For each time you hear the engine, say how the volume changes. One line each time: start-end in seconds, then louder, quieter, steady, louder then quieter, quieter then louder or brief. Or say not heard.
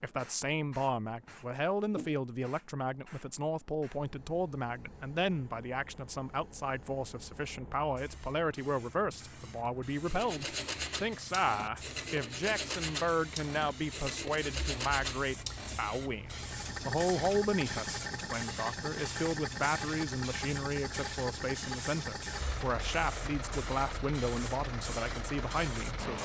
16.2-26.2 steady.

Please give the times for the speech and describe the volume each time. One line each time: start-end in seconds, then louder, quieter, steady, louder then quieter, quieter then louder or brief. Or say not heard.
0.0-26.2 steady.